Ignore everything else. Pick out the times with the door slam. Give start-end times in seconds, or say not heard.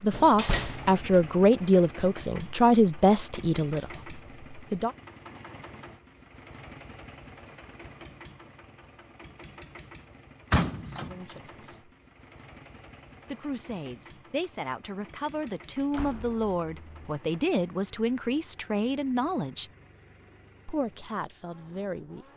0.1-1.0, 10.5-11.2, 15.9-17.1.